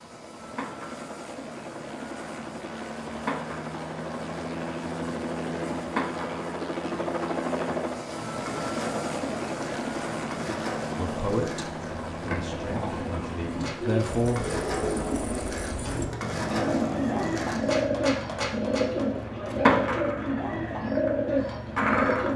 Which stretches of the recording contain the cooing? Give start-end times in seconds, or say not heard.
13.8-22.3.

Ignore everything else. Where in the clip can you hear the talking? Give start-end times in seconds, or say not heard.
10.9-14.4.